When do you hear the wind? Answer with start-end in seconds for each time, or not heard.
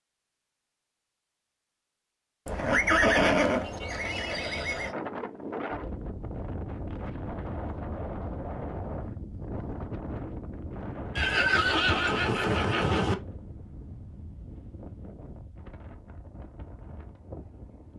4.8-17.9.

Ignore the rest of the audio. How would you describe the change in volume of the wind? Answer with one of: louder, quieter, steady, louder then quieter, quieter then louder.
quieter.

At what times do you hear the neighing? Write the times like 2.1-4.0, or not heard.
2.5-5.0, 11.2-13.2.